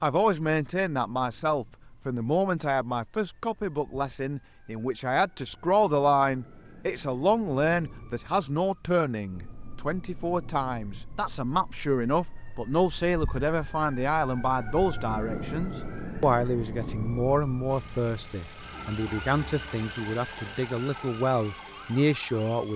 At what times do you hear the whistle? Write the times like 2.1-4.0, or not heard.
not heard.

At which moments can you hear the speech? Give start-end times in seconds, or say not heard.
0.0-22.7.